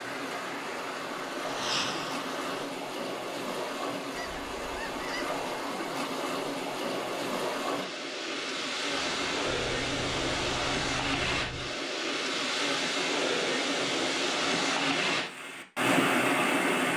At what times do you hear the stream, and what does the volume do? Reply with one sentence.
You can hear the stream from 0.0 to 16.9 s, getting louder.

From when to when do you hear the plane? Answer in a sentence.
You can hear the plane from 0.0 to 2.8 s and from 8.9 to 10.8 s.